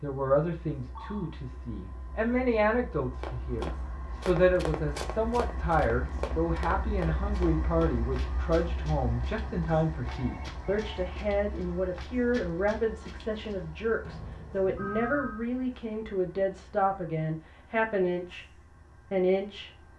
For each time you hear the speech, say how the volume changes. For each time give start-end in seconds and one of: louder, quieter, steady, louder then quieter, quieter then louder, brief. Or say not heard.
0.0-19.7 steady.